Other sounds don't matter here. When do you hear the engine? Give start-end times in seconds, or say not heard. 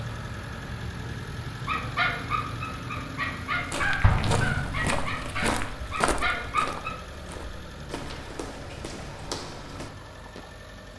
0.0-10.9.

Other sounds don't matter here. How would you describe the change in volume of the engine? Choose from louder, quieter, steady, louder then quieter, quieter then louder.
quieter.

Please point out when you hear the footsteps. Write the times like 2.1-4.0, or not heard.
3.5-10.4.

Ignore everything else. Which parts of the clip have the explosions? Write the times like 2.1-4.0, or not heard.
4.0-5.3.